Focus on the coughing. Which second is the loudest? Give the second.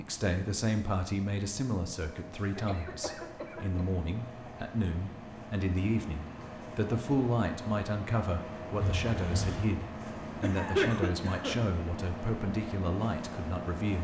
11 s.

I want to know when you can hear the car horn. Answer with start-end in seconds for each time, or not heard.
8.8-9.8.